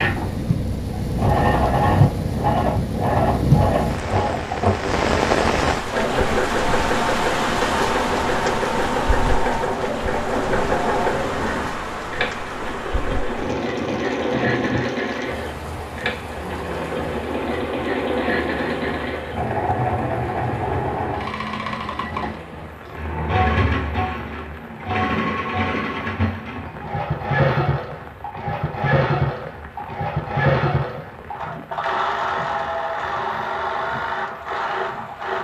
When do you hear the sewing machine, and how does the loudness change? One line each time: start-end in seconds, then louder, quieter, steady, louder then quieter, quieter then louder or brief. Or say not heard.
0.0-35.4 steady.